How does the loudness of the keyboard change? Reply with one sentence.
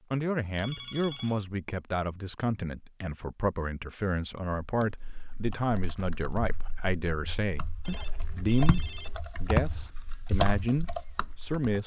The volume of the keyboard goes down, then up.